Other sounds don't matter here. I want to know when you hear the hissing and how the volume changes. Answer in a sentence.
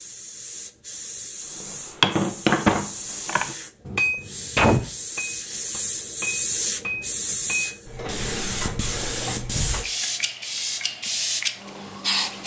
You can hear the hissing from 0.0 to 12.4 s, getting louder.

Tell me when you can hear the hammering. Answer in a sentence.
The hammering can be heard from 1.6 to 7.7 s.